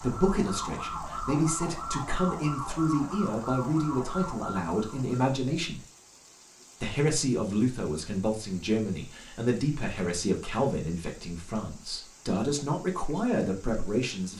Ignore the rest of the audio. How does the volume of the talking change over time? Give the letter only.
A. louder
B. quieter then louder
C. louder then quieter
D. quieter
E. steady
E.